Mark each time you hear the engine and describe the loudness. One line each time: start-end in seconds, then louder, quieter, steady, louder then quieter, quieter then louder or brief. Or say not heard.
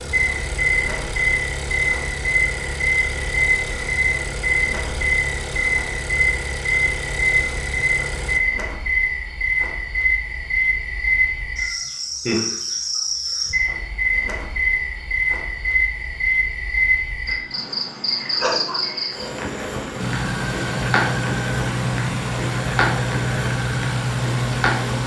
0.0-8.4 steady
19.9-25.0 steady.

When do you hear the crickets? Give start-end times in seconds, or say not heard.
0.1-25.0.